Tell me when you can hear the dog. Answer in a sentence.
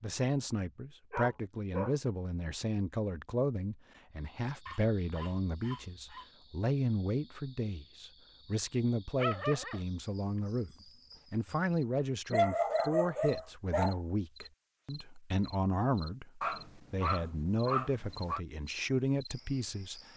The dog can be heard from 1.1 to 1.9 s, from 4.7 to 6.3 s, from 9.2 to 9.8 s, from 12.3 to 14.0 s and from 16.4 to 18.4 s.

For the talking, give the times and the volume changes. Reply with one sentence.
You can hear the talking from 0.0 to 20.0 s, at a steady volume.